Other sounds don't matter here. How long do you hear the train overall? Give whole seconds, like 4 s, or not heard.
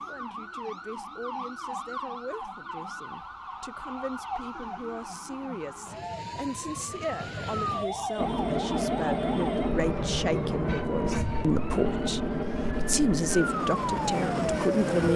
7 s.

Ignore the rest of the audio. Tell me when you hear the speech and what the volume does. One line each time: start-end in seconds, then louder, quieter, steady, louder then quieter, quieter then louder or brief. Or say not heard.
0.0-15.1 louder.